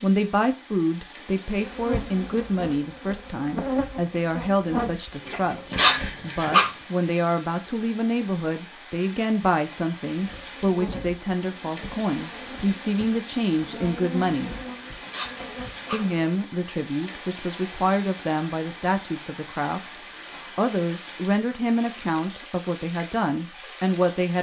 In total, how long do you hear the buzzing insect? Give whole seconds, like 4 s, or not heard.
11 s.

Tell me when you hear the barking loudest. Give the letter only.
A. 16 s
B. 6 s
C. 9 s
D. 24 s
B.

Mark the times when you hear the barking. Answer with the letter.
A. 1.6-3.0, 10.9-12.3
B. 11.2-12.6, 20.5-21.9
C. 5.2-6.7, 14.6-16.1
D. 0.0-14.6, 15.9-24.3
C.